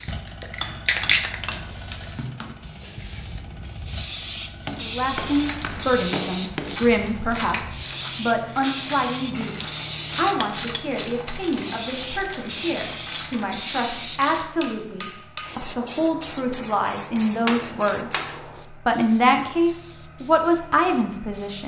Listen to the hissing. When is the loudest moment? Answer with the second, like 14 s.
1 s.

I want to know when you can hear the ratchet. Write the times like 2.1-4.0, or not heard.
5.2-14.5.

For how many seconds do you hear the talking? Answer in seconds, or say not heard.
16 s.